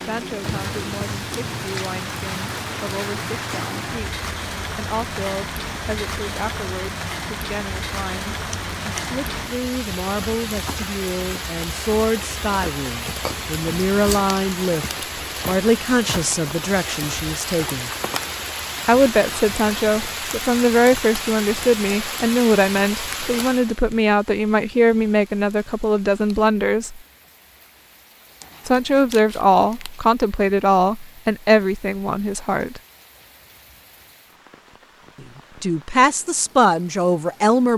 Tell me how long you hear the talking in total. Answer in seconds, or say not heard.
32 s.